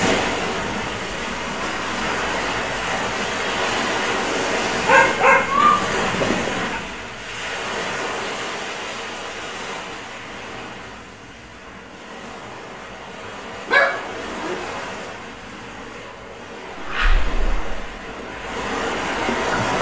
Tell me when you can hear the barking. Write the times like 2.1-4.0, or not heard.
4.8-6.8, 13.7-14.6.